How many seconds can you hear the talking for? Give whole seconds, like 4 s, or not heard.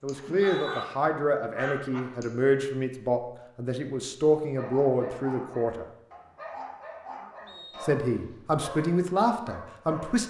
8 s.